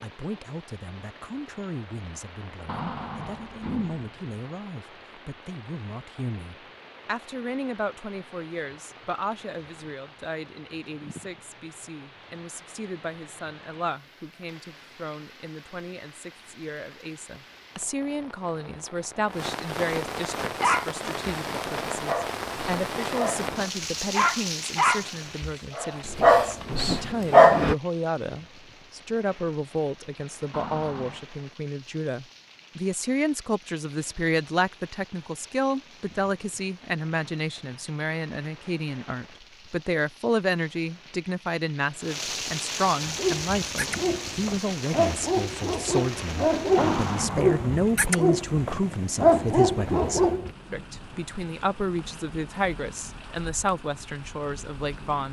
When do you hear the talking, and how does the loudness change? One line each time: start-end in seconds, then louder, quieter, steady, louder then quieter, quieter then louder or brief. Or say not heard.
0.0-55.2 louder.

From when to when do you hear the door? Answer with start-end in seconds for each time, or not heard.
2.6-4.0, 30.5-31.2, 46.8-47.8.